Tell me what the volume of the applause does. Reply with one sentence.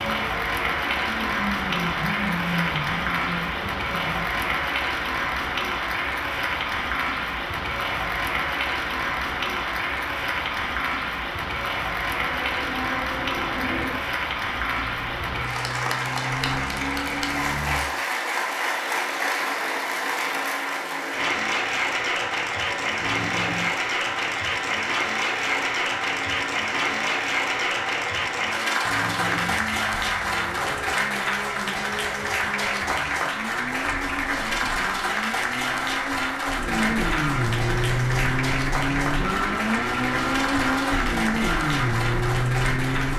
The volume of the applause stays about the same.